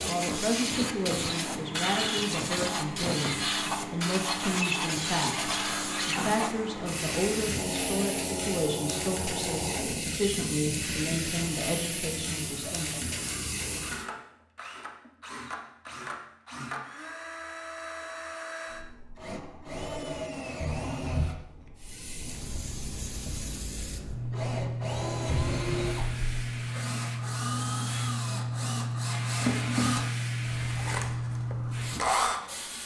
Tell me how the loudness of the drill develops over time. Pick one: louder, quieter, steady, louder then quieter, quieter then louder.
louder.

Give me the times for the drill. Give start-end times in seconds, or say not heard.
0.0-32.8.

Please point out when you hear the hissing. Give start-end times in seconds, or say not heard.
0.0-14.1, 21.8-32.8.